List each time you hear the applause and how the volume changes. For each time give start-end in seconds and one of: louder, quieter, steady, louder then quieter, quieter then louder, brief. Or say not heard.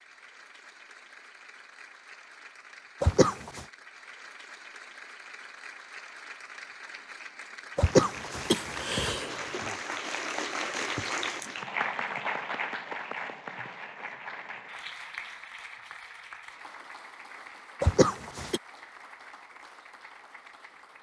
0.0-20.9 louder then quieter.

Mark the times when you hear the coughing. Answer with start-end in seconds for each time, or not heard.
3.0-3.6, 7.8-9.6, 17.8-18.6.